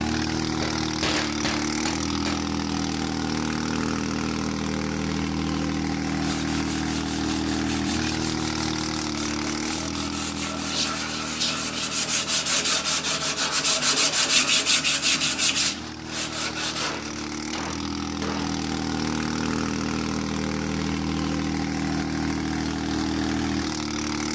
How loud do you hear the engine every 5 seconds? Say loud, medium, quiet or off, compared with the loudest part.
loud, loud, medium, loud, loud.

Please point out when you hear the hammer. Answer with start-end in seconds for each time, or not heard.
0.6-2.5, 16.8-18.6.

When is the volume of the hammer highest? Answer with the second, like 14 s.
1 s.